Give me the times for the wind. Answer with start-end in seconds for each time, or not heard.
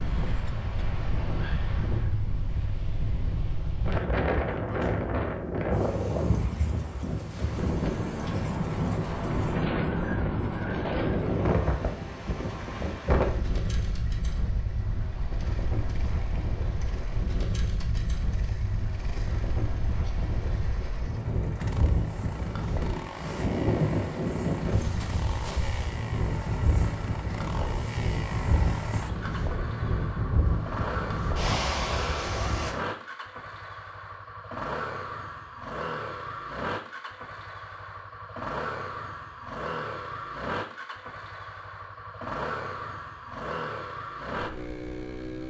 0.0-32.8.